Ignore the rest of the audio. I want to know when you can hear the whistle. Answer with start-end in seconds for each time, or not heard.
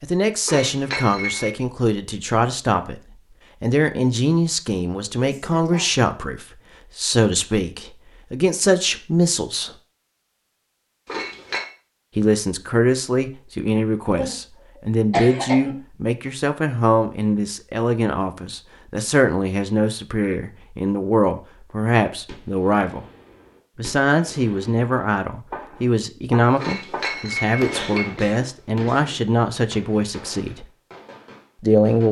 not heard.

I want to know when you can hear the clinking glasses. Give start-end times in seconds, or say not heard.
0.5-1.5, 11.1-11.7, 26.6-28.1.